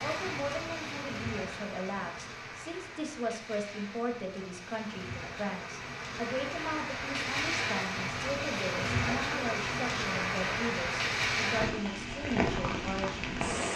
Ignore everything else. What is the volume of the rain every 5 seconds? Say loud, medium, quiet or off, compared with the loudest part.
medium, loud, loud.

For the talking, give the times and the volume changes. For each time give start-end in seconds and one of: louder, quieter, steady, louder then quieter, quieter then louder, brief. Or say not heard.
0.0-13.7 steady.